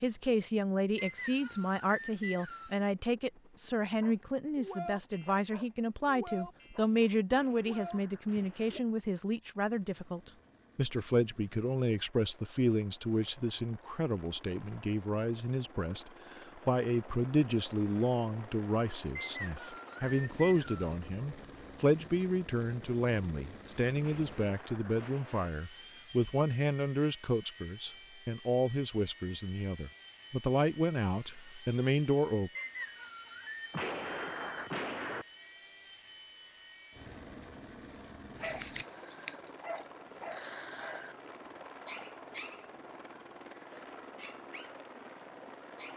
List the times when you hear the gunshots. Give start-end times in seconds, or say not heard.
7.3-8.8, 24.0-25.5, 33.7-35.2.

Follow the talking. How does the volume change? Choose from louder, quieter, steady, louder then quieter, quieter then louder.
steady.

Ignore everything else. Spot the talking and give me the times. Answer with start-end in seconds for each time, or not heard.
0.0-32.5.